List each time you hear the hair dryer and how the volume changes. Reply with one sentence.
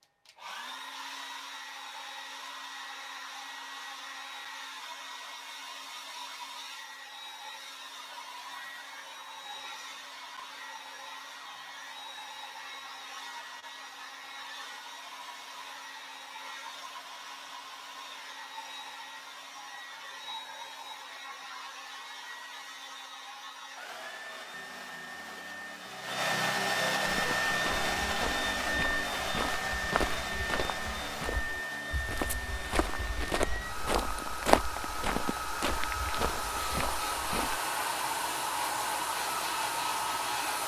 The hair dryer can be heard from 0.0 to 40.6 s, getting louder.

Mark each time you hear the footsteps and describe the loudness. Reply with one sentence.
You can hear the footsteps from 27.1 to 37.6 s, getting louder then quieter.